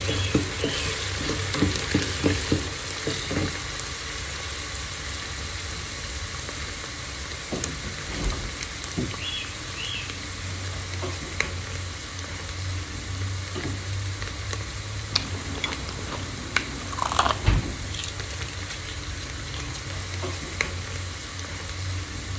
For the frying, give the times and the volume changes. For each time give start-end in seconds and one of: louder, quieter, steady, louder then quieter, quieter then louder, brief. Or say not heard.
0.0-22.3 quieter.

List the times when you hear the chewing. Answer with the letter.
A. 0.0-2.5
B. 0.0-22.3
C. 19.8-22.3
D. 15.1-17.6
D.